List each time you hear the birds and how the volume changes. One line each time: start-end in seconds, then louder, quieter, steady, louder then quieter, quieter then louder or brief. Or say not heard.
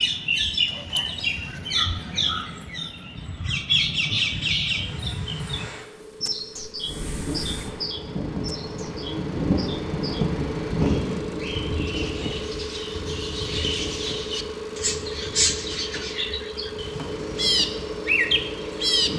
0.0-19.1 quieter then louder.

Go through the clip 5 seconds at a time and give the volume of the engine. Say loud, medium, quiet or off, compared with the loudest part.
quiet, medium, loud, loud.